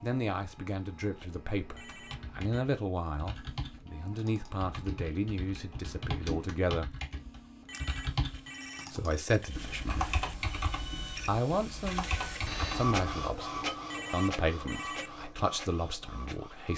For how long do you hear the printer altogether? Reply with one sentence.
The printer can be heard for 17 seconds in total.